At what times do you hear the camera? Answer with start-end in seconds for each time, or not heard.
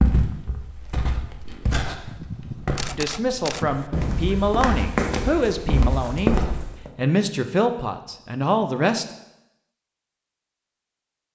2.0-3.9.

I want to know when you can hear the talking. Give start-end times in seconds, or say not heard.
3.0-6.3, 7.0-9.1.